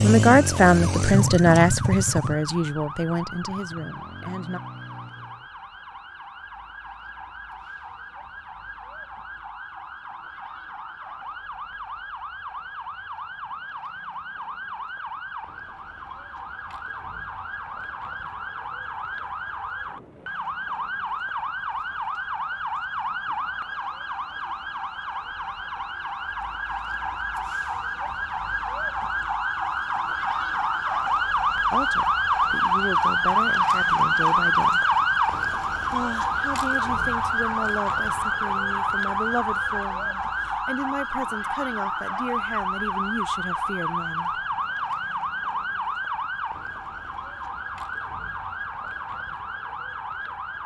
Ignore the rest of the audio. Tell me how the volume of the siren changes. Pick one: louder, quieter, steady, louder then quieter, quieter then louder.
louder then quieter.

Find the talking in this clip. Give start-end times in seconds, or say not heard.
0.0-4.6, 31.7-34.9, 35.9-44.5.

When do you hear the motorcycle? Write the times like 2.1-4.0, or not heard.
0.0-5.5.